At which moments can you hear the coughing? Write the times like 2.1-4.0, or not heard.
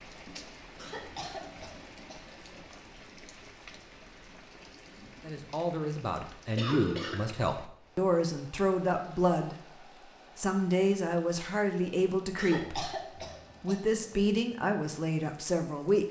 0.8-2.5, 6.5-7.3, 12.3-14.2.